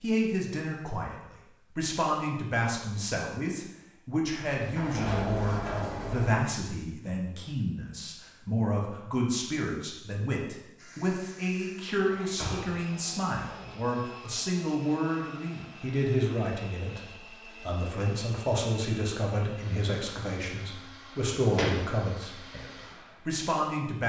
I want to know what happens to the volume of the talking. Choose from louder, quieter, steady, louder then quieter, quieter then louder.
steady.